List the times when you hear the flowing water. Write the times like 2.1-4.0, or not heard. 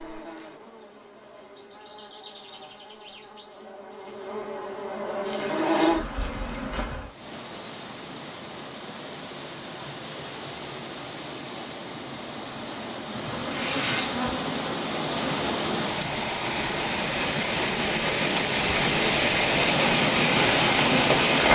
7.0-21.5.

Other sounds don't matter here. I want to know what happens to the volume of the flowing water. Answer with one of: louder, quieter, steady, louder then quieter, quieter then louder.
louder.